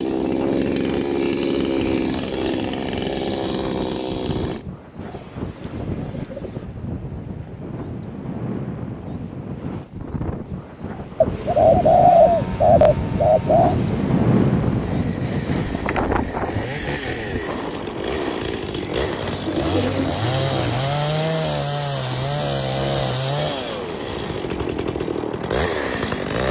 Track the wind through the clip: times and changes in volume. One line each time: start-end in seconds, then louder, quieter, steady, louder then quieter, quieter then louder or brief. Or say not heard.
0.0-26.4 louder then quieter.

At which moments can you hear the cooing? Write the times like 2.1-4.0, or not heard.
5.0-6.7, 11.2-13.8, 18.8-21.0.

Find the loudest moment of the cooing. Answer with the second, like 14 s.
12 s.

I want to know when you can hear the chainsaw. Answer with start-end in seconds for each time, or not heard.
0.0-4.7, 11.2-26.4.